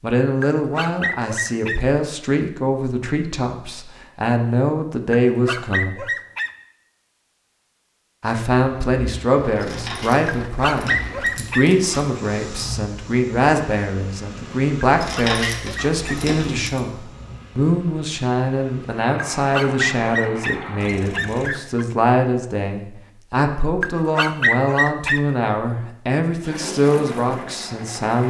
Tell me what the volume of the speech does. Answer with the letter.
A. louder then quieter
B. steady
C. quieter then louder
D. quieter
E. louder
B.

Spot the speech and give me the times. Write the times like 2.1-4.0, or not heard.
0.0-6.0, 8.2-28.2.